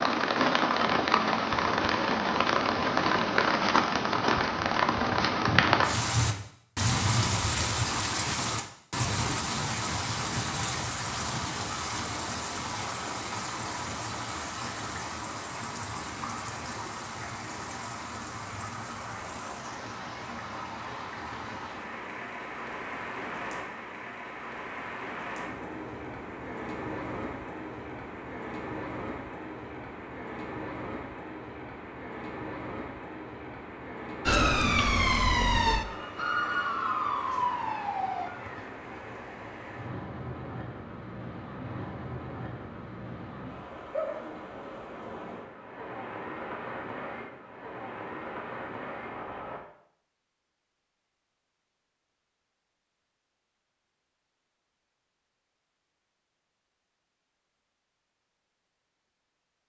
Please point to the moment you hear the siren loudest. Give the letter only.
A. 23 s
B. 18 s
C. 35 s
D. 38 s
C.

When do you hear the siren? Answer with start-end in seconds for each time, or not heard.
34.2-38.7.